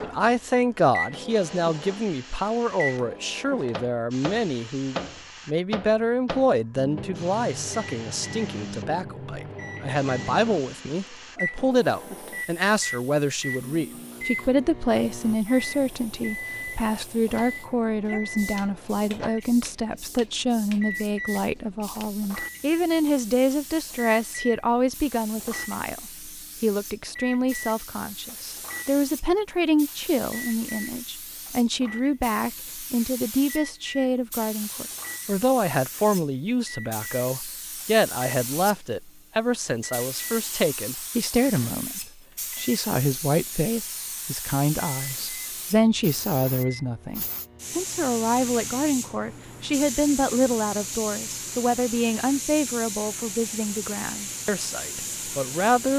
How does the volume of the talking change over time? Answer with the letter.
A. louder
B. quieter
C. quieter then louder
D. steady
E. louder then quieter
D.